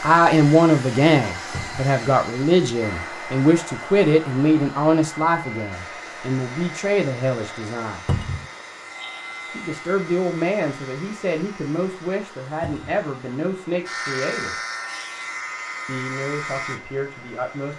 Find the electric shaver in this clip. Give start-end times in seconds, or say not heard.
5.7-17.7.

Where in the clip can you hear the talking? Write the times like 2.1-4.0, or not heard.
0.0-8.0, 9.5-14.6, 15.8-17.7.